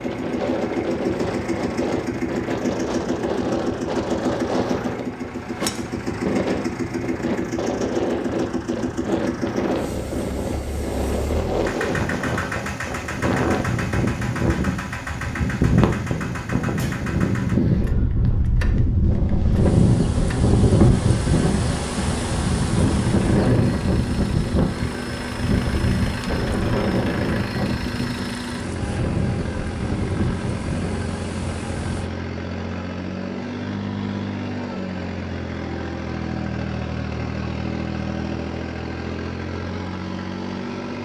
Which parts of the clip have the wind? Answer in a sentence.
The wind can be heard from 0.0 to 32.1 s.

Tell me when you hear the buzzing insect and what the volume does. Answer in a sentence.
The buzzing insect can't be heard in this clip.